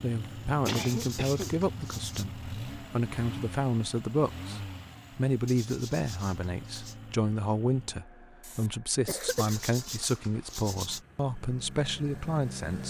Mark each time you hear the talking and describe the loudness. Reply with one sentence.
The talking can be heard from 0.0 to 12.8 s, at a steady volume.